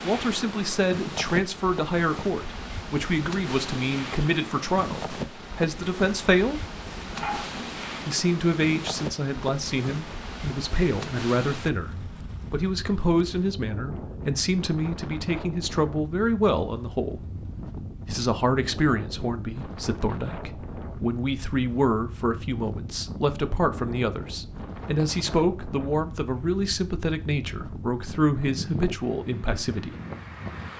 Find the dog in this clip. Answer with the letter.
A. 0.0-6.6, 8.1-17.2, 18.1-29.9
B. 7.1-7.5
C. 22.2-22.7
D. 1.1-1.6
B.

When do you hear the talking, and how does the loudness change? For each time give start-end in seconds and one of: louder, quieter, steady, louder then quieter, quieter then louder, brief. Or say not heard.
0.0-6.6 steady
8.1-17.2 steady
18.1-29.9 steady.